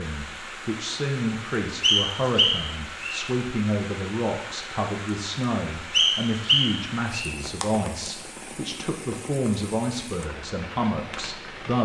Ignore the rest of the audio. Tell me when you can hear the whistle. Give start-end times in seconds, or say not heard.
1.8-3.2, 5.9-7.3.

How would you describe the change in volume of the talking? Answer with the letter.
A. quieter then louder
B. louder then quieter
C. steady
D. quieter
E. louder
C.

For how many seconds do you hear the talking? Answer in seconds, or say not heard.
12 s.